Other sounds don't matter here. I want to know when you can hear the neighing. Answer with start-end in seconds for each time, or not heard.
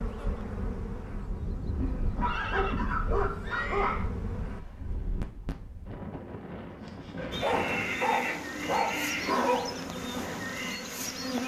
1.8-4.0, 7.4-9.4.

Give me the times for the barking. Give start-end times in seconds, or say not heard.
2.1-4.0, 7.2-9.8.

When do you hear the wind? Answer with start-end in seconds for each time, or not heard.
0.0-11.4.